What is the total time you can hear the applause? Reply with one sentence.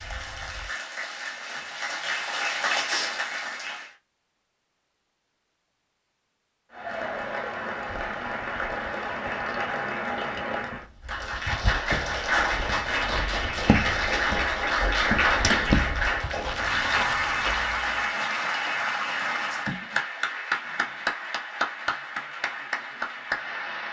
The applause can be heard for 21 seconds in total.